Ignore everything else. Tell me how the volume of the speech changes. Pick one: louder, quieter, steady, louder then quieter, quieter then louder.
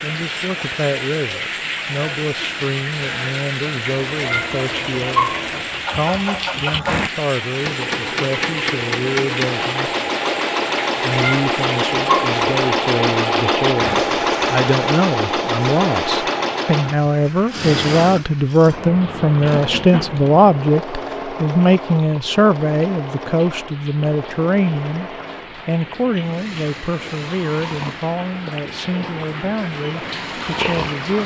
louder then quieter.